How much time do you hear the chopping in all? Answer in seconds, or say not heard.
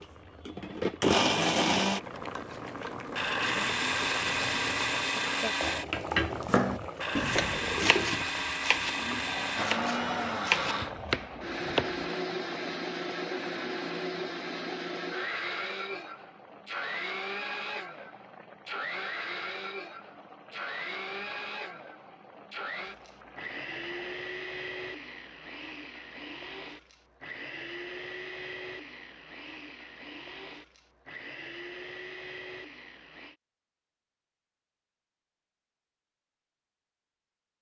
6 s.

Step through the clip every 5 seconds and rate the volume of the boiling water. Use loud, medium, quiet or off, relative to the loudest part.
loud, loud, medium, quiet, quiet, off, off, off.